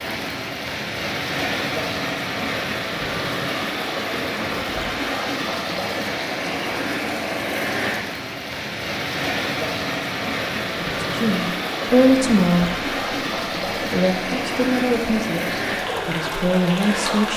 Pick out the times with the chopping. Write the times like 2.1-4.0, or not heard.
not heard.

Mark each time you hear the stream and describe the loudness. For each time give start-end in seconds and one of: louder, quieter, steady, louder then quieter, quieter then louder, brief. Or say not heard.
0.0-17.3 steady.